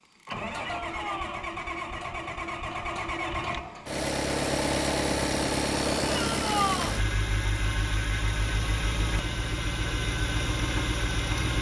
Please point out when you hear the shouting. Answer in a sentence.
The shouting can be heard from 0.6 to 1.4 s and from 6.1 to 7.0 s.